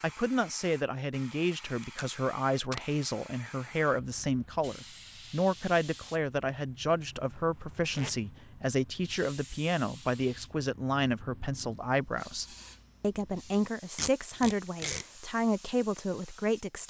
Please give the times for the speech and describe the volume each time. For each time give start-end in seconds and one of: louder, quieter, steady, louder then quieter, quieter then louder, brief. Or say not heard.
0.0-16.8 steady.